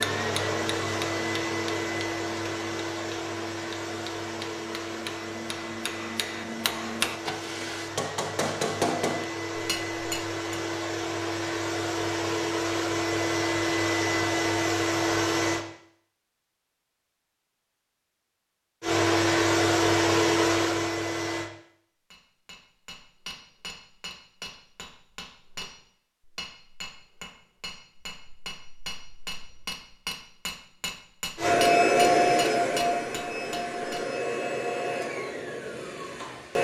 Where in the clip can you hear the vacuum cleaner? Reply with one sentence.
You can hear the vacuum cleaner from 0.0 to 15.7 s, from 18.8 to 21.5 s and from 31.4 to 36.5 s.